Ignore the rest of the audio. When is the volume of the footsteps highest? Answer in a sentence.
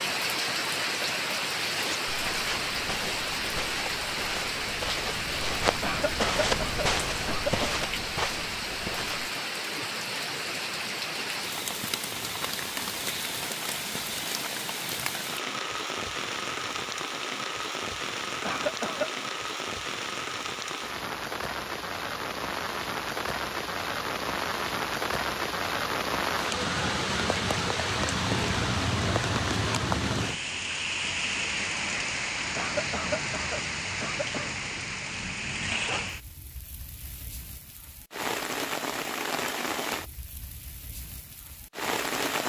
The loudest moment of the footsteps is at 6 seconds.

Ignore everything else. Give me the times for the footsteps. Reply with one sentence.
You can hear the footsteps from 1.6 to 9.3 s.